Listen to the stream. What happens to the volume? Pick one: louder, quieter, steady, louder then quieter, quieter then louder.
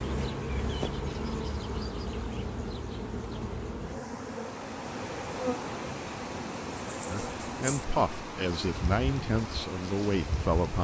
steady.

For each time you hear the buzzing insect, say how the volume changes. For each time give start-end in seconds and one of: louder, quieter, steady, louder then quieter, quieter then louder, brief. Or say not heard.
0.0-10.8 quieter.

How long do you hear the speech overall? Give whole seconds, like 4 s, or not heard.
4 s.